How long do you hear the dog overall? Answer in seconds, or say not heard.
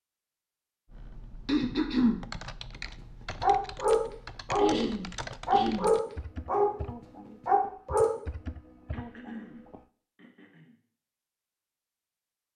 3 s.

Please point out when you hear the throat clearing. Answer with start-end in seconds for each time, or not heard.
1.4-2.2, 4.5-5.9, 8.9-10.8.